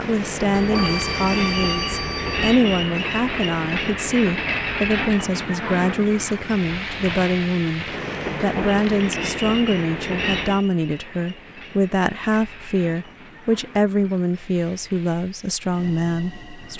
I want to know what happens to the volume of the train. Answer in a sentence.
The loudness of the train goes down.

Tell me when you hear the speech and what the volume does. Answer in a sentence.
You can hear the speech from 0.0 to 16.7 s, at a steady volume.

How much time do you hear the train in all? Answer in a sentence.
The train can be heard for 17 seconds in total.